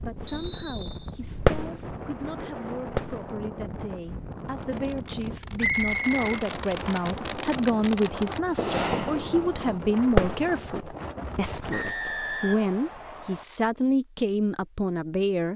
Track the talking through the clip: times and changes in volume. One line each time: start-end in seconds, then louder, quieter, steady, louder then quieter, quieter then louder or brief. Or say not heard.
0.0-15.5 louder.